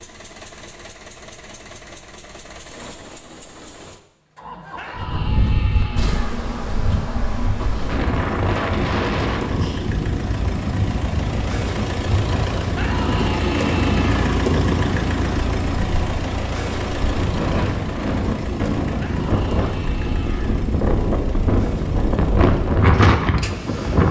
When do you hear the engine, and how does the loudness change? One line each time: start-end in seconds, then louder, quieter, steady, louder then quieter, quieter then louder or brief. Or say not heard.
0.0-24.0 louder then quieter.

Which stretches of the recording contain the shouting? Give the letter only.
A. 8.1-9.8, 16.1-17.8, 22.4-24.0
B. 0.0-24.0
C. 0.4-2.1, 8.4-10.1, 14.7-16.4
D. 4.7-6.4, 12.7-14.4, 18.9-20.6
D.